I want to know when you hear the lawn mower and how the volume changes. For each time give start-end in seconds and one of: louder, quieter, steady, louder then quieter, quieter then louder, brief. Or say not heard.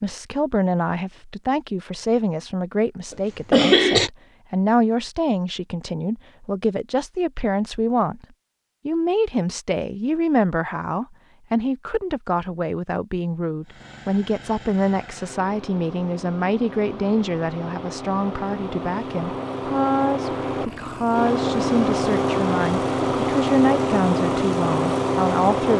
13.6-25.7 louder.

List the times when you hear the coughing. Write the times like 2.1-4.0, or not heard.
3.1-4.1.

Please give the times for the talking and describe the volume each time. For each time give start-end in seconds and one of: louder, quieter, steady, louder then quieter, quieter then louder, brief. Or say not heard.
0.0-8.2 steady
8.8-25.7 steady.